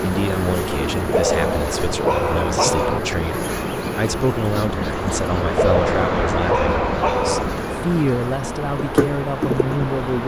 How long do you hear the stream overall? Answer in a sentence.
The stream can be heard for 10 seconds in total.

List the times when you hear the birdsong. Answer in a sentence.
You can't hear the birdsong here.